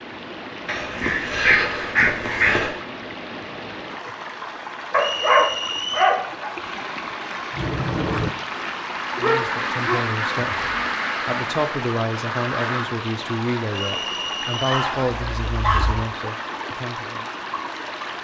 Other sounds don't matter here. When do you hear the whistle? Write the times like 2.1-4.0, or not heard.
5.0-6.2, 13.7-14.8.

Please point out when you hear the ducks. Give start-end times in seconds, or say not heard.
7.5-12.9.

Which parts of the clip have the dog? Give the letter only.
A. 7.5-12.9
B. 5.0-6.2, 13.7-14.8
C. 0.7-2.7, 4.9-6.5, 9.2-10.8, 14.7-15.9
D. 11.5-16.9
C.